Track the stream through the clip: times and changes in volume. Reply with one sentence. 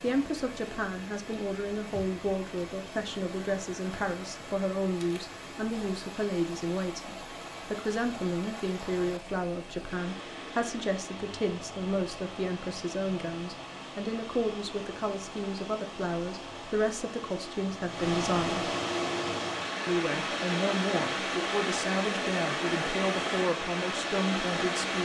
The stream can be heard from 0.0 to 25.0 s, getting louder.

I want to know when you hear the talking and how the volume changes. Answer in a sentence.
You can hear the talking from 0.0 to 18.7 s, at a steady volume; and from 19.9 to 25.0 s, at a steady volume.